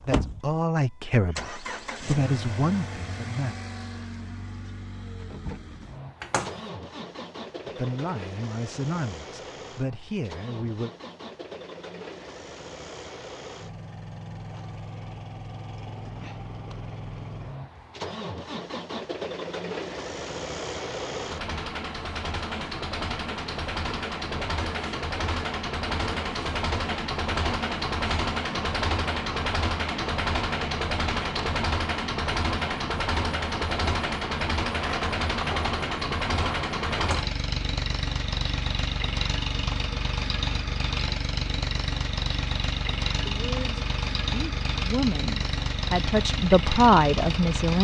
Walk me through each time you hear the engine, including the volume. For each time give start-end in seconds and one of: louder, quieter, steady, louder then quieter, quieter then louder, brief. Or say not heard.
0.0-47.8 louder.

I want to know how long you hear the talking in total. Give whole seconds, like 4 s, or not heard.
11 s.